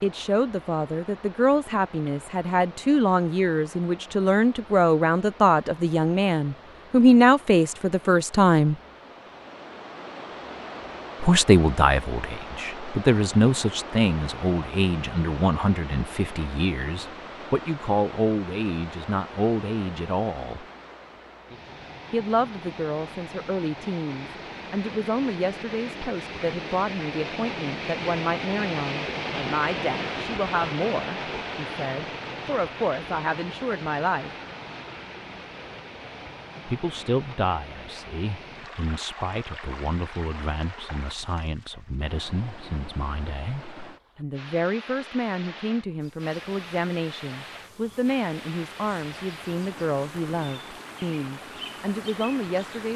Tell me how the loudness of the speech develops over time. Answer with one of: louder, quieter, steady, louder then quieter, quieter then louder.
quieter.